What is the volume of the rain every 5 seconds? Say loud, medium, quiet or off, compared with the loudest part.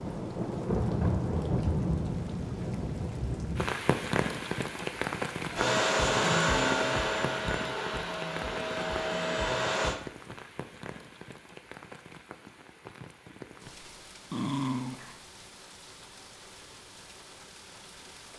loud, medium, quiet, quiet.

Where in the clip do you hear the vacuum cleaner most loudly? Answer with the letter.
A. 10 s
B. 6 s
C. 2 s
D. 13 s
B.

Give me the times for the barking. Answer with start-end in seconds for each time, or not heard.
14.3-15.2.